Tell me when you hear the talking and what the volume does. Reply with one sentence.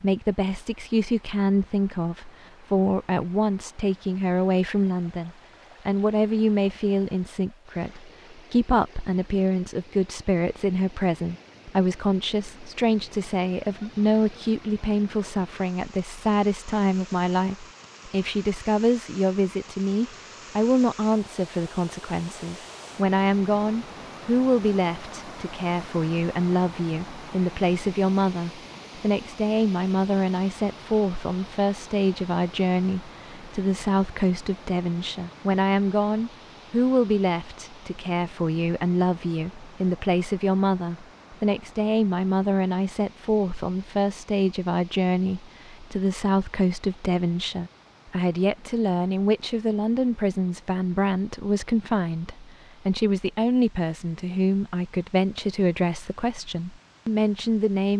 The talking can be heard from 0.0 to 57.9 s, at a steady volume.